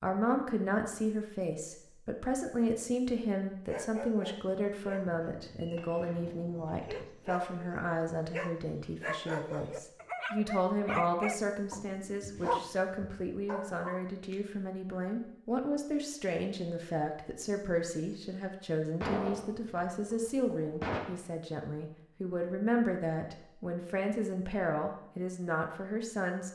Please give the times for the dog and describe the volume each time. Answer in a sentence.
You can hear the dog from 3.6 to 14.3 s, getting louder.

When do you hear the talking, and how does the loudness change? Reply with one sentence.
You can hear the talking from 0.0 to 26.5 s, at a steady volume.